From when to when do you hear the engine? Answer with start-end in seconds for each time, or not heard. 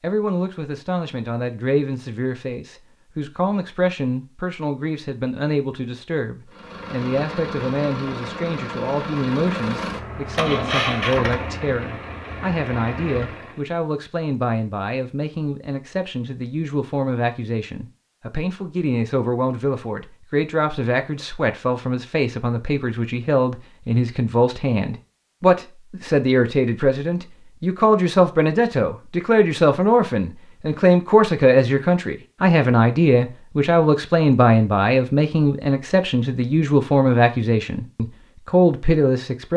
6.5-13.7.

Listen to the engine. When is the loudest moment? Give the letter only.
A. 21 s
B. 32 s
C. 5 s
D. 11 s
D.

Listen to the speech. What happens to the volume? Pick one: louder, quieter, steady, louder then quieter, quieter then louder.
louder.